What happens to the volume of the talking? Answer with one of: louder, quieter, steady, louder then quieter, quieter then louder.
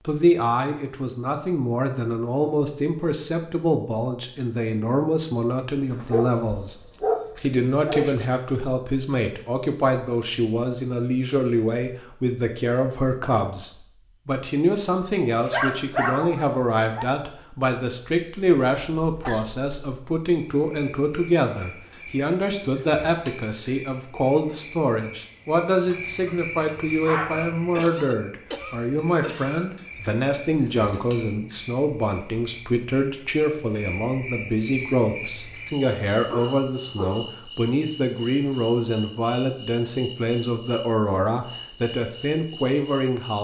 steady.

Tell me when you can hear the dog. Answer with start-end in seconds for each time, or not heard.
5.9-8.2, 15.4-17.1, 25.9-27.6, 35.5-37.3.